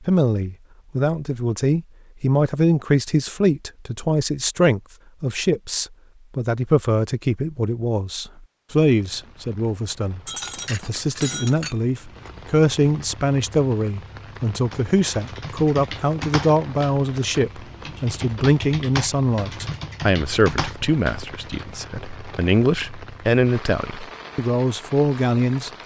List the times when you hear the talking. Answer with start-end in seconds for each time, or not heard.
0.1-25.7.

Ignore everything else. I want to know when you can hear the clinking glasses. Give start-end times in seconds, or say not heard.
10.2-12.3.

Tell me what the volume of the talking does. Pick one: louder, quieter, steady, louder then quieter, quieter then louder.
steady.